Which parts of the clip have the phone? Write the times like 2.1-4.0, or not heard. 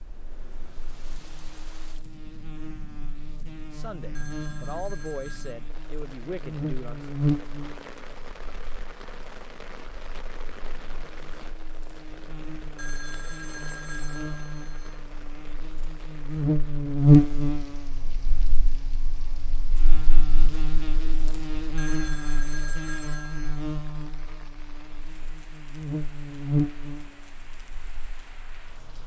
4.2-5.5, 12.8-15.0, 21.8-23.6.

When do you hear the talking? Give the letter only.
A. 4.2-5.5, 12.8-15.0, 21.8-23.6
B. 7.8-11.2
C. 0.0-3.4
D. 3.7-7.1
D.